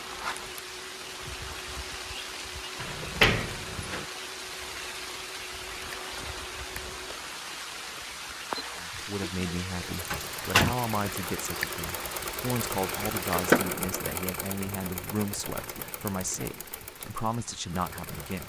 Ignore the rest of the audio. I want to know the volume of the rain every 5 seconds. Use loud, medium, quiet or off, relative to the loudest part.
loud, loud, loud, quiet.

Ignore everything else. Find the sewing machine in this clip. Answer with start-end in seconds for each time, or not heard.
0.0-18.4.